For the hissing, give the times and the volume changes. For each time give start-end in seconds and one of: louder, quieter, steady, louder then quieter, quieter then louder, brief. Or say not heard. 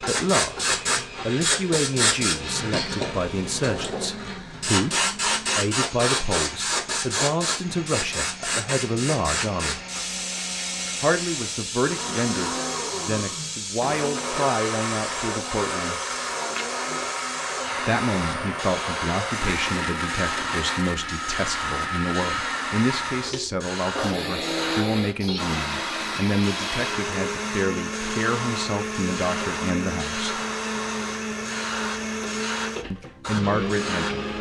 0.0-34.3 quieter.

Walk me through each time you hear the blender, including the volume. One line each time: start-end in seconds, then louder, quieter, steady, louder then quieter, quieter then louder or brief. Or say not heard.
0.1-34.3 louder.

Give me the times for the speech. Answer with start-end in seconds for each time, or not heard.
0.0-9.8, 11.0-16.0, 17.8-30.4, 32.9-34.2.